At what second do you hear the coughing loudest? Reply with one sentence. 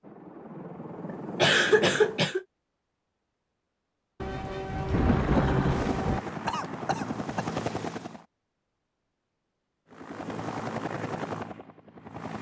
The loudest moment of the coughing is at 2 seconds.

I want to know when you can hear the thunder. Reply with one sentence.
The thunder can be heard from 4.2 to 6.2 s.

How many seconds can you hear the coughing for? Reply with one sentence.
You can hear the coughing for 2 seconds altogether.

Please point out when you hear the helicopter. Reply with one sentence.
The helicopter can be heard from 0.0 to 2.4 s, from 4.7 to 8.2 s and from 9.9 to 12.3 s.